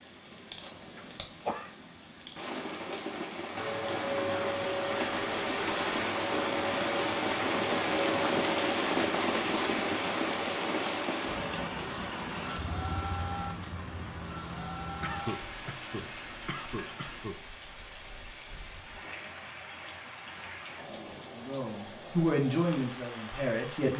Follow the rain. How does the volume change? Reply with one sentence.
The volume of the rain goes up, then down.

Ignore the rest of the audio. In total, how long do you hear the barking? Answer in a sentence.
You can't hear the barking here.